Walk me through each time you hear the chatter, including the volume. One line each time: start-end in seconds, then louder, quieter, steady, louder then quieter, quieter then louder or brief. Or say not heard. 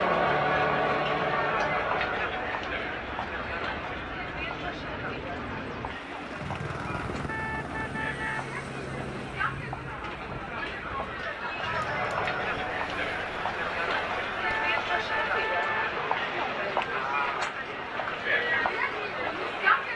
0.0-19.9 quieter then louder.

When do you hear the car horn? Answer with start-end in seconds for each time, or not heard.
7.2-8.4, 14.4-15.9.